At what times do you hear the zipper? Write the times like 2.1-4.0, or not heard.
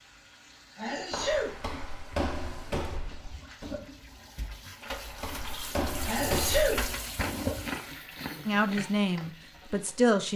not heard.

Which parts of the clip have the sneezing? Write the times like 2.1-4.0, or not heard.
0.8-1.6, 6.0-6.8.